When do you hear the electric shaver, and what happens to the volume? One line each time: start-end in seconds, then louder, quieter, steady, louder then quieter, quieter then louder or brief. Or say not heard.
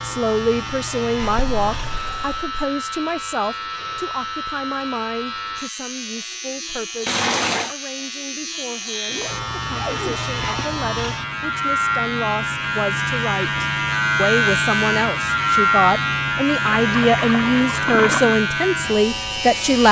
0.0-19.8 louder.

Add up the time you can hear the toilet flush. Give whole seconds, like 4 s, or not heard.
4 s.